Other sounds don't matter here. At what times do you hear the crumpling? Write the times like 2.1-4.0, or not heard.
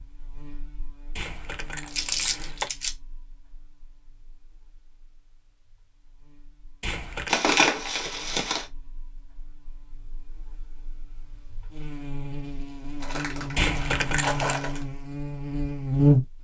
1.9-2.9, 7.2-8.7, 13.0-14.8.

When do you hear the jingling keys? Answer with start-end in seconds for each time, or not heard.
1.1-2.7, 6.8-7.5, 13.6-14.6.